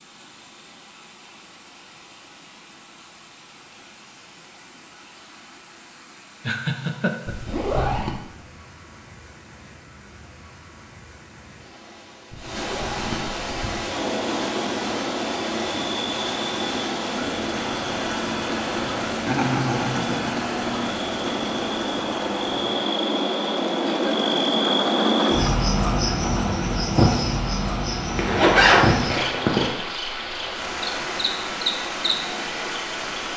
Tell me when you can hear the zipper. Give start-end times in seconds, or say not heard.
7.2-8.2, 12.3-13.8, 28.1-29.7.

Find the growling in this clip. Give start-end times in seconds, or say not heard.
not heard.